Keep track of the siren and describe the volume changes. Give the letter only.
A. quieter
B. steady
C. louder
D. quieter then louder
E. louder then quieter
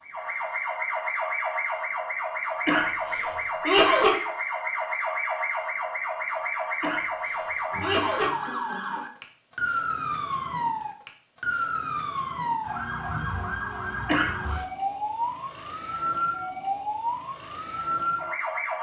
B.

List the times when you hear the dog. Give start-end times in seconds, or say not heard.
not heard.